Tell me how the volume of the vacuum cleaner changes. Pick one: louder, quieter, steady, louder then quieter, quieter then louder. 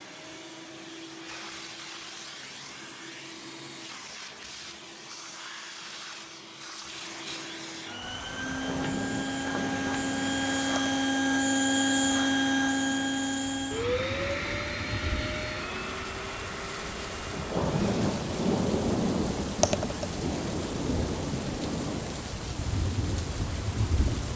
louder then quieter.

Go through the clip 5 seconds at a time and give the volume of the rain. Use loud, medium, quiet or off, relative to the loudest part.
off, medium, quiet, loud, loud.